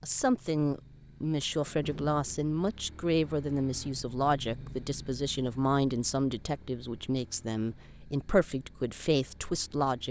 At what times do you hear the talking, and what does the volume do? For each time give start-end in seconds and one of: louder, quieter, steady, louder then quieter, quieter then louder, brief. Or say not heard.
0.0-10.0 steady.